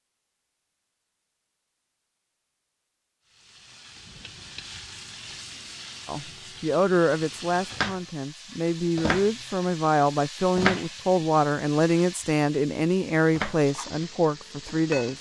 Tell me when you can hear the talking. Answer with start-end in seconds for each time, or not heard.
6.0-15.1.